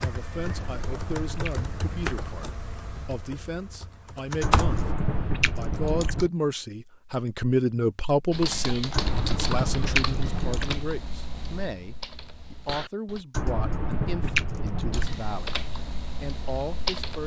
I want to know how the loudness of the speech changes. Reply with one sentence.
The volume of the speech goes up, then down.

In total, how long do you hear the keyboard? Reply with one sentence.
The keyboard can be heard for 12 seconds in total.